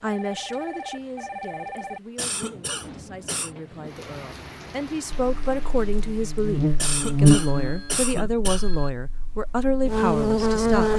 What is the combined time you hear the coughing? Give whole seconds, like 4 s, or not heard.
3 s.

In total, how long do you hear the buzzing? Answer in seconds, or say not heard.
6 s.